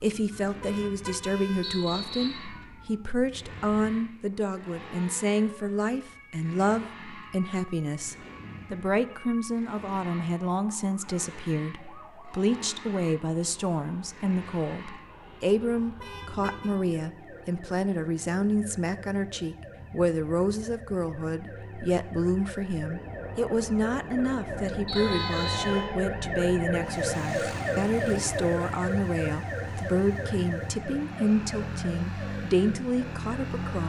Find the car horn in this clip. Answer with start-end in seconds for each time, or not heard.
0.6-1.9, 16.0-16.8, 24.9-25.9.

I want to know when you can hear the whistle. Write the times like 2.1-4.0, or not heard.
1.6-2.5, 24.9-25.6.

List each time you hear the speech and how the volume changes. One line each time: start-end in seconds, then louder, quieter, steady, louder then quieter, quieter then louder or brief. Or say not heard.
0.0-33.8 steady.